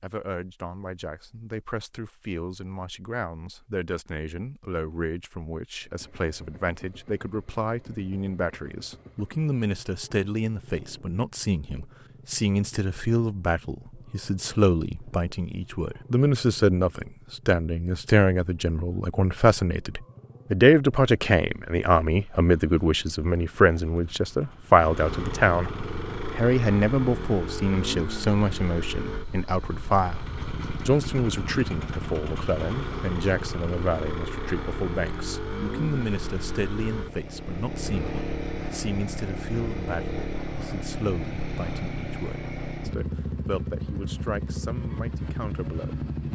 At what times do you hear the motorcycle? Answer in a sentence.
You can hear the motorcycle from 5.8 to 46.3 s.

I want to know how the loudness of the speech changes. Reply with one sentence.
The volume of the speech goes up, then down.